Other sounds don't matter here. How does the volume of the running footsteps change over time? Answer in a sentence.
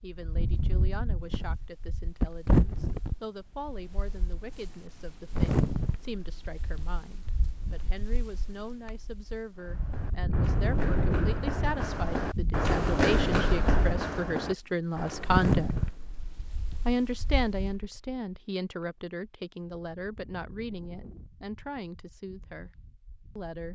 The volume of the running footsteps goes up, then down.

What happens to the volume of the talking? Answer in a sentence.
The loudness of the talking goes up, then down.